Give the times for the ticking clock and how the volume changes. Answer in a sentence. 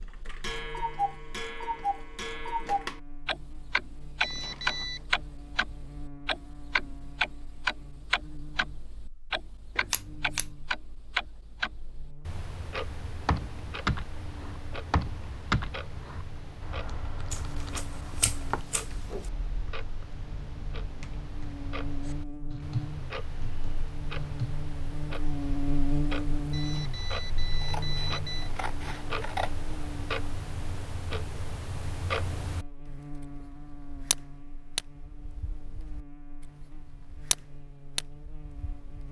The ticking clock can be heard from 0.0 to 39.0 s, getting quieter then louder.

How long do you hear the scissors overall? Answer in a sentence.
The scissors can be heard for 5 seconds in total.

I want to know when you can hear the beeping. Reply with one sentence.
The beeping can be heard from 4.2 to 5.0 s and from 26.5 to 28.5 s.